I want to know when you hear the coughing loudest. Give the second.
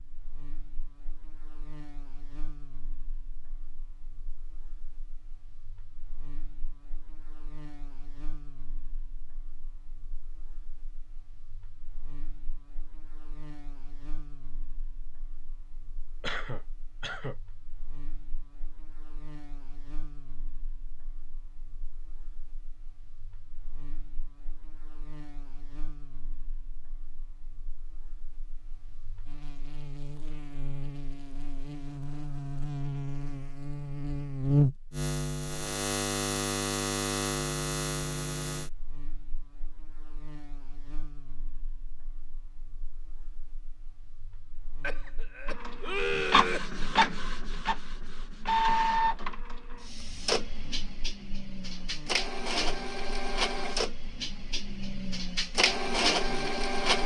46 s.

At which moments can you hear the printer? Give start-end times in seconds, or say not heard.
45.5-57.0.